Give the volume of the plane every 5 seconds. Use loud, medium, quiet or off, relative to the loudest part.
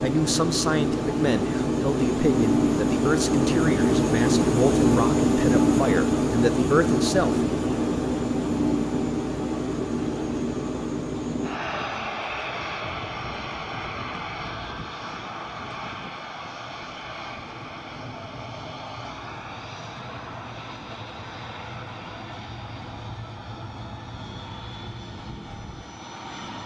loud, loud, medium, quiet, quiet, quiet.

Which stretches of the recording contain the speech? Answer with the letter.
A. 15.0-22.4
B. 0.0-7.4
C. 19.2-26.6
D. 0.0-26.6
B.